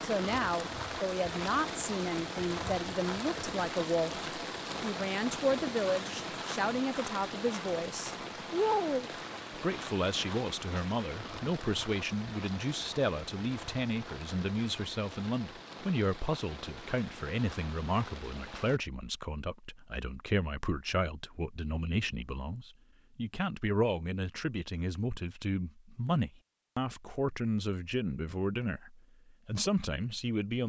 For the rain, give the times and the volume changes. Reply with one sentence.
You can hear the rain from 0.0 to 18.8 s, getting quieter.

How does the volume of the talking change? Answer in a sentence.
The loudness of the talking stays about the same.